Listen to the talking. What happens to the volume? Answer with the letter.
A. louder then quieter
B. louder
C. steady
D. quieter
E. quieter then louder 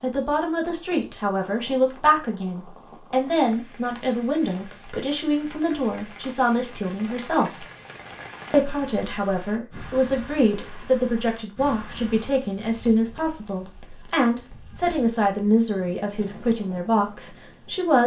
C.